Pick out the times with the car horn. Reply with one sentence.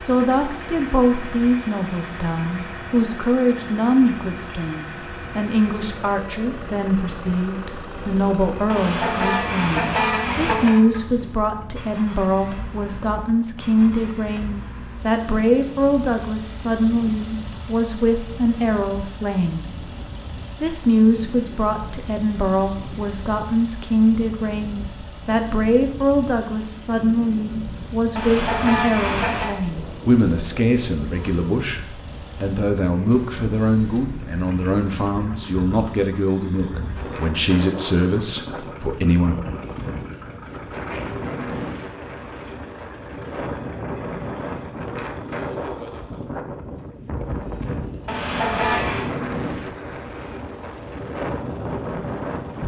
You can hear the car horn from 8.7 to 10.7 s, from 28.1 to 29.5 s and from 48.0 to 49.1 s.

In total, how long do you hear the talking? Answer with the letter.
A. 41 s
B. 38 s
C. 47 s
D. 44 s
B.